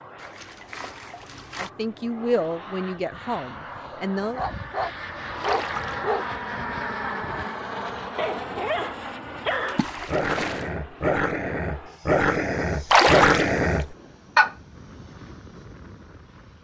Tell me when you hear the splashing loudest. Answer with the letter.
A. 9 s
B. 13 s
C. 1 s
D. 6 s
B.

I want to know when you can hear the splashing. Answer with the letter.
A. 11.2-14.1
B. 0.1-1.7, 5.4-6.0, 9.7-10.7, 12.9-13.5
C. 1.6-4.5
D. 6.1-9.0
B.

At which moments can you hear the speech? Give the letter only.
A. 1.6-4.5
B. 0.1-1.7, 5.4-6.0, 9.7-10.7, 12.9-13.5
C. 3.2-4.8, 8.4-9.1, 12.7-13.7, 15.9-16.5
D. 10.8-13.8
A.